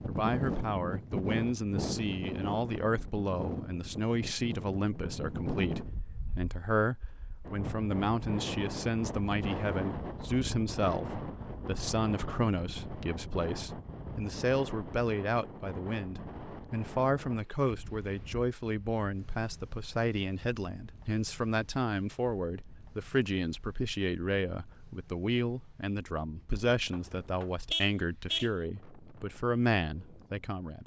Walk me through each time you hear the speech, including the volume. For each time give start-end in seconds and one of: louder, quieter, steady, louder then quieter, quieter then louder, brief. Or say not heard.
0.1-30.8 steady.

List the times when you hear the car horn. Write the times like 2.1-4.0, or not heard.
26.9-28.5.